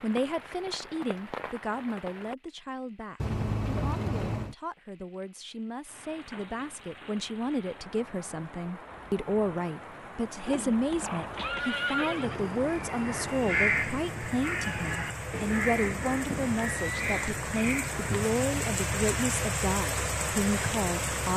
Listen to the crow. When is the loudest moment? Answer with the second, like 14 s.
14 s.